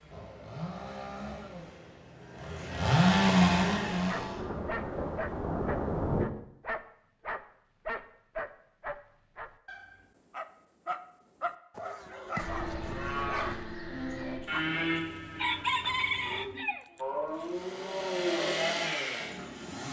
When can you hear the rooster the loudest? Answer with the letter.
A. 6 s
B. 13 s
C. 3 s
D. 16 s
D.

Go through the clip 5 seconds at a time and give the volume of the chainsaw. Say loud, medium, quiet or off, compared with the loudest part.
loud, off, off, medium.